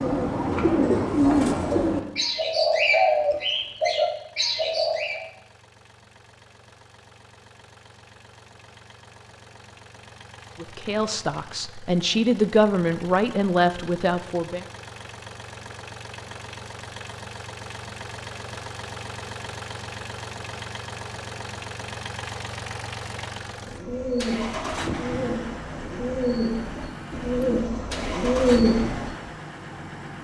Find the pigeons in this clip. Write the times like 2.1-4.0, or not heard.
0.0-5.2, 23.5-29.3.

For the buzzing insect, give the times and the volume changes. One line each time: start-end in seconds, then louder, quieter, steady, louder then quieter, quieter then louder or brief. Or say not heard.
not heard.